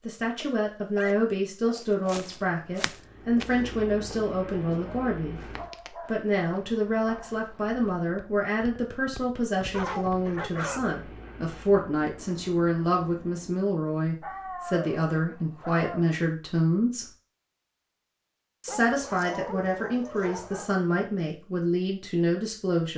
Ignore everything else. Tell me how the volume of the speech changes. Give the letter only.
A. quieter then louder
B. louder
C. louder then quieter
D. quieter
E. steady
E.